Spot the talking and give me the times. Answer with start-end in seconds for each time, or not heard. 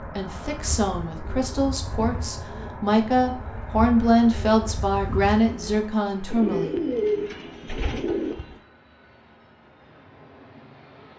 0.1-6.8.